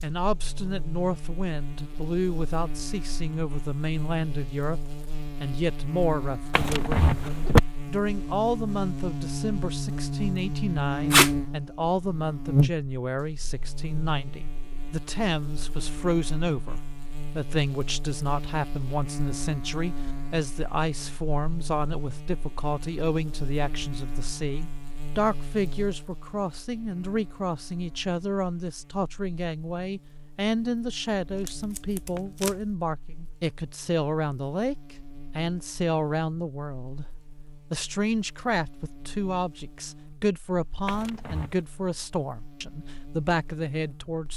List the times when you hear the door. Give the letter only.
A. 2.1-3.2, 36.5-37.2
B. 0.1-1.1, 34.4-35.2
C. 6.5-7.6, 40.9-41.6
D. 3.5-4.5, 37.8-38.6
C.